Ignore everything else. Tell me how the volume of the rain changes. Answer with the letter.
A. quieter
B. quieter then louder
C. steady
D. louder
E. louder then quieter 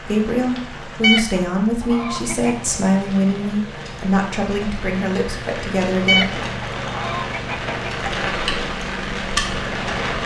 D.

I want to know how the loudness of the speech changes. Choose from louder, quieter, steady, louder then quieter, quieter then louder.
steady.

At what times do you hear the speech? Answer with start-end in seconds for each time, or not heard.
0.0-6.5.